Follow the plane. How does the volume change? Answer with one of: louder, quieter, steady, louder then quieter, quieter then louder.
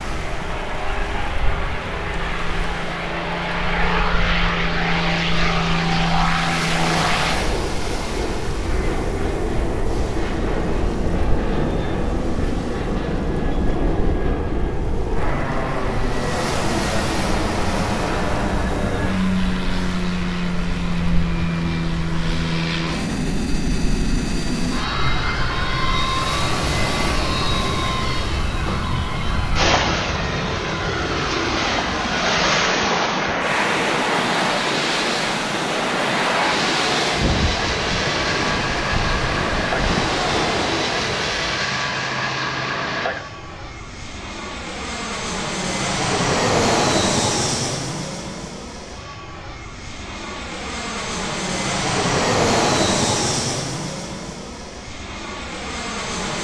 steady.